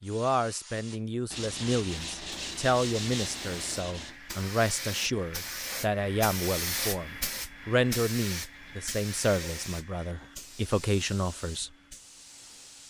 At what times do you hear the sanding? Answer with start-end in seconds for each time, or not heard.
1.3-4.2.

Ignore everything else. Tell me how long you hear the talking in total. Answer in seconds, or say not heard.
12 s.